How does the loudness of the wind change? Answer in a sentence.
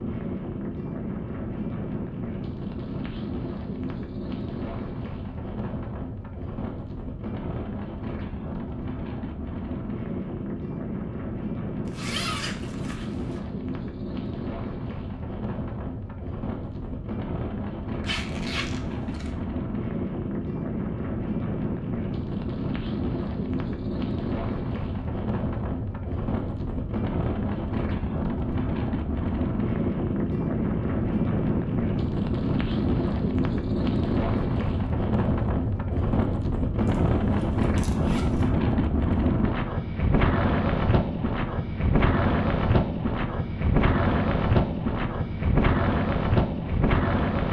The loudness of the wind goes up.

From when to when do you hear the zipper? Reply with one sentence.
The zipper can be heard from 11.8 to 13.4 s, from 18.0 to 19.3 s and from 36.9 to 38.5 s.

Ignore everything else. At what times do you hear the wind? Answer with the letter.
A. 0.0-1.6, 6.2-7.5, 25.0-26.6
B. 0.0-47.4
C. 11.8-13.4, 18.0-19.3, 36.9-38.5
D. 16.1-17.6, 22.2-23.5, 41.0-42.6
B.